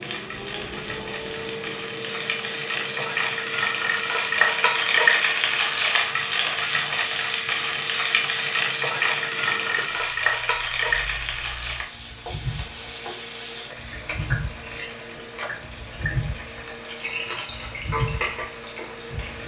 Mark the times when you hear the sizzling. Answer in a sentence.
The sizzling can be heard from 0.0 to 19.4 s.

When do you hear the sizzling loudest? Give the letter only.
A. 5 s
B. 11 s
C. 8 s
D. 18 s
A.